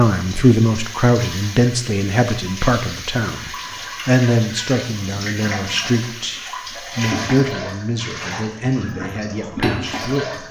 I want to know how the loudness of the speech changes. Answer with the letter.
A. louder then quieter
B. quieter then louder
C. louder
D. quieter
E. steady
D.